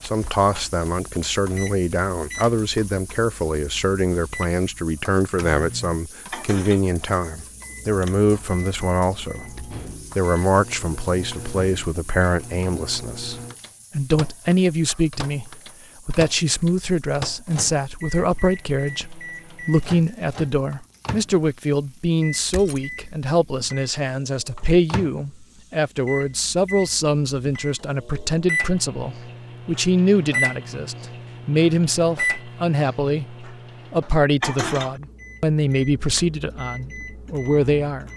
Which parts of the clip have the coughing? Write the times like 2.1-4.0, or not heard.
not heard.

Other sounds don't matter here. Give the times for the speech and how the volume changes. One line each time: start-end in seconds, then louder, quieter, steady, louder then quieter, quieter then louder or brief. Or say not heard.
0.0-38.1 steady.